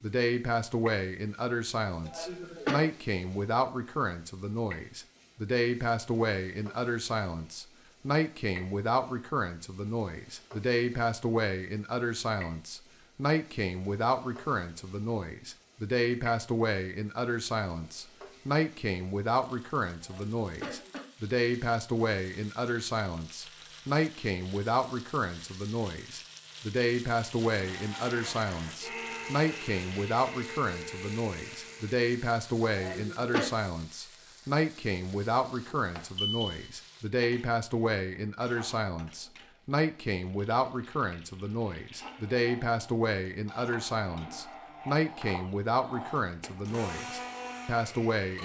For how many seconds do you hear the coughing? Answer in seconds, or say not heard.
3 s.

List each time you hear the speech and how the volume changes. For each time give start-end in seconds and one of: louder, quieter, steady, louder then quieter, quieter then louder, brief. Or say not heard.
0.0-48.4 steady.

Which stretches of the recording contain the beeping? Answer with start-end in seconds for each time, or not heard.
35.7-36.7.